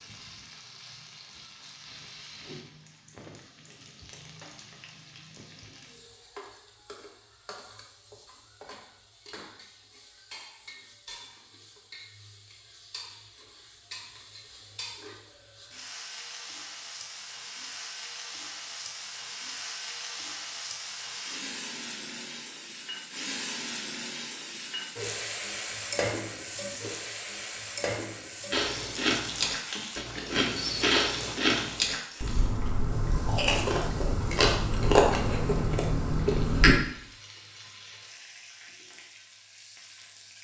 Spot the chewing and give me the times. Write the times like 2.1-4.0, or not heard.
28.5-36.8.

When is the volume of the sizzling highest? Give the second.
26 s.